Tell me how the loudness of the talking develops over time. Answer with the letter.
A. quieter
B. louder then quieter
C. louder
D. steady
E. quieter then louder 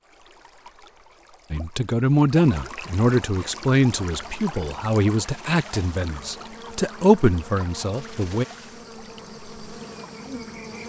E.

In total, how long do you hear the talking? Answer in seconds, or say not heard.
7 s.